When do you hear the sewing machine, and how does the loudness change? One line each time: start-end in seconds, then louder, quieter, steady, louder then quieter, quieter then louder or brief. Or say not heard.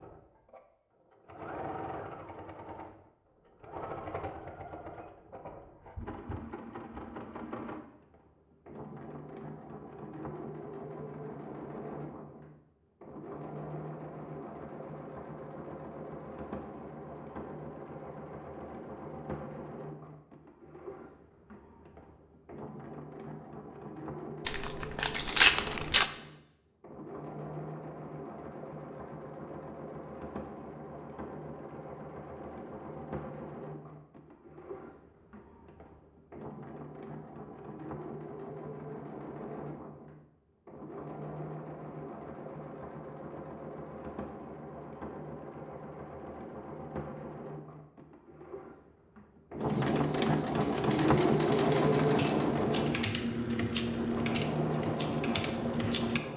0.0-56.3 louder.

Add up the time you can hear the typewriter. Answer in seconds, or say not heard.
6 s.